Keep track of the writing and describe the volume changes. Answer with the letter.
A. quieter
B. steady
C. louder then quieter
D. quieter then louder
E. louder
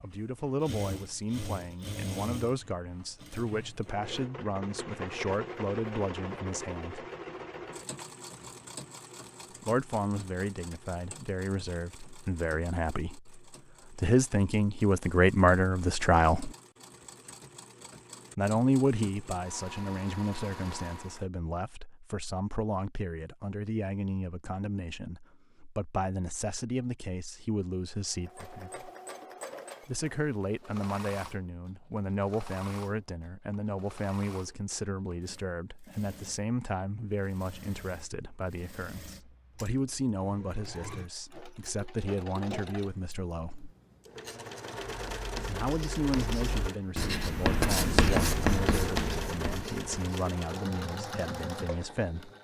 C.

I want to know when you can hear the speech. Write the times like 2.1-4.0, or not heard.
0.0-7.0, 9.6-16.5, 18.4-28.9, 29.9-43.7, 45.5-52.3.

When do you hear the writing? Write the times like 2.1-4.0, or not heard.
45.0-50.1.